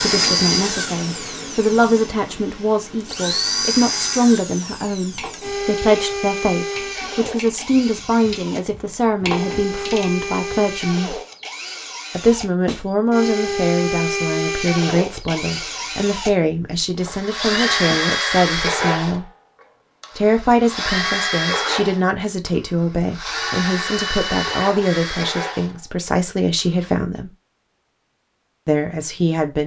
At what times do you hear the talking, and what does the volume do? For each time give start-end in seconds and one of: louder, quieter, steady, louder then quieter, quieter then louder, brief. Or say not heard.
0.0-11.2 steady
12.2-19.2 steady
20.1-27.3 steady
28.6-29.6 brief.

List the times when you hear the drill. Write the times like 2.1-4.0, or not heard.
0.0-26.9.